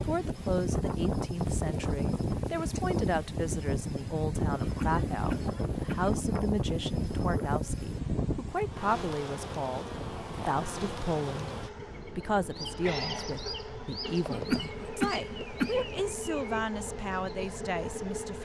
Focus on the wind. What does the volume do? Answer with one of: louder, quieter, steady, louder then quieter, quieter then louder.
quieter.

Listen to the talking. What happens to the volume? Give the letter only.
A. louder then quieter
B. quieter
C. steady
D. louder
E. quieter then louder
C.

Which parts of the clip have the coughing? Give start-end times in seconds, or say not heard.
4.5-6.1, 14.2-15.9.